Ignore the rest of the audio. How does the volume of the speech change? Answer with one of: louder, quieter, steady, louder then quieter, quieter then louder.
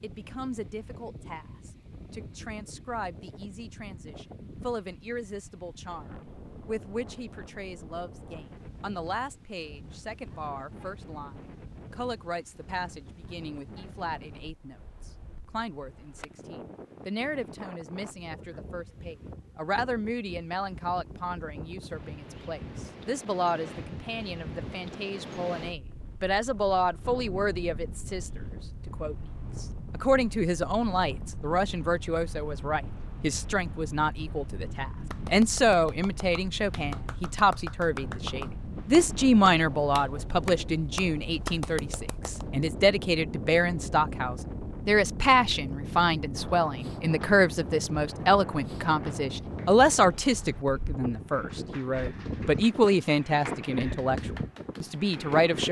louder.